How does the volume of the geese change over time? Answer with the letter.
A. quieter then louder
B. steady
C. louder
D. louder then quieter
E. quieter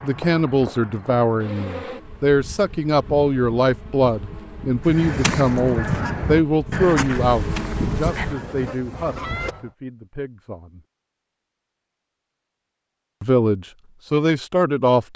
E.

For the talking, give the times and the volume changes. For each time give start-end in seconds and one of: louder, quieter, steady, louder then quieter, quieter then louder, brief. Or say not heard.
0.0-10.8 quieter
13.2-15.1 brief.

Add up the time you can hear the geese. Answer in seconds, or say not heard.
5 s.